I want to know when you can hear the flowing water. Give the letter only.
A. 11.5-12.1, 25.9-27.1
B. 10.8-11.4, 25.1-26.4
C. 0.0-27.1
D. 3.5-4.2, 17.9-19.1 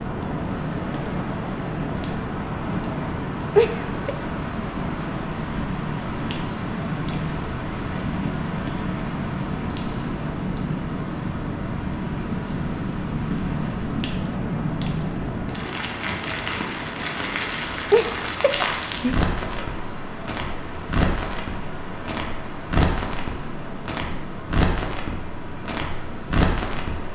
C.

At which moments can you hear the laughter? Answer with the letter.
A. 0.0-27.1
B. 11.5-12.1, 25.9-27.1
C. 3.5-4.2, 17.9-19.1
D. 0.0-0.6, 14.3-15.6
C.